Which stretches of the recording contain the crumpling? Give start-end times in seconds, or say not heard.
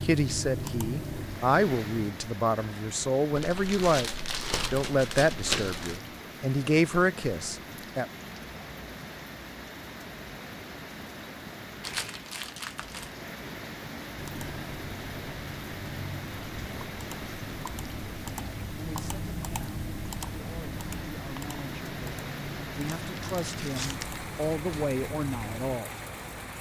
3.4-6.0, 11.8-13.1, 23.0-24.1.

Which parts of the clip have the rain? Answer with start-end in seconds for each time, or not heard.
0.0-26.5.